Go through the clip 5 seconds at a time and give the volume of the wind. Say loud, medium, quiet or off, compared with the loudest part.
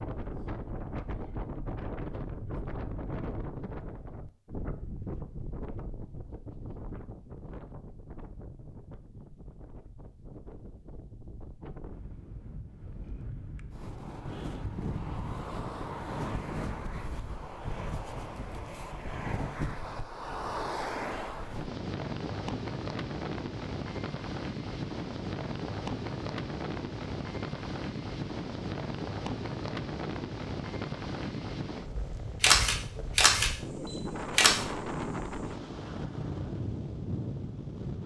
loud, medium, medium, loud, loud, loud, loud, loud.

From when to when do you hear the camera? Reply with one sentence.
You can hear the camera from 32.4 to 34.6 s.